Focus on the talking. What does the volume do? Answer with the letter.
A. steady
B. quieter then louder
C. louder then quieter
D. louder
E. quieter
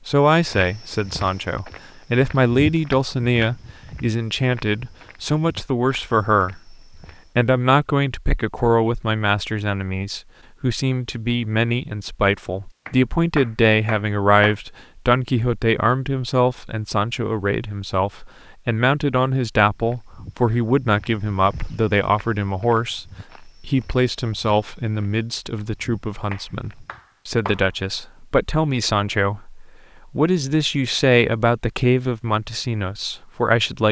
A.